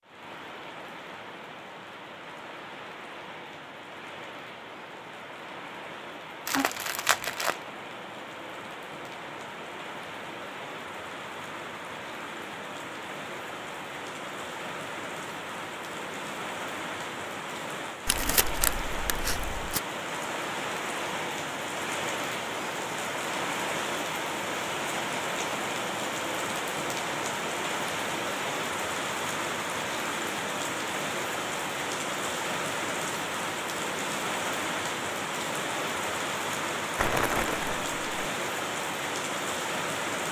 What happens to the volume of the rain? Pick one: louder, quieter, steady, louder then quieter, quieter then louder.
louder.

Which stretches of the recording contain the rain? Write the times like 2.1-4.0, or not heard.
0.0-40.2.